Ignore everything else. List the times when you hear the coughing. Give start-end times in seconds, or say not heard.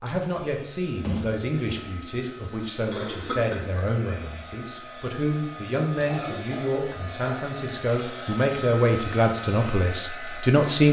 2.9-3.6, 6.1-7.5.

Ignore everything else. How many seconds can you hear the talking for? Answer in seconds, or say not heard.
11 s.